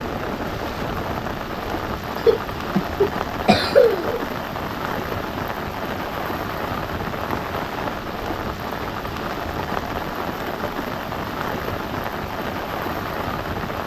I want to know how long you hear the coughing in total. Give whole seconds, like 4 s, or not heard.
2 s.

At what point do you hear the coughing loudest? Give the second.
4 s.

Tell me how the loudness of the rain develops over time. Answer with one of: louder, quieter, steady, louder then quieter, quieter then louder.
steady.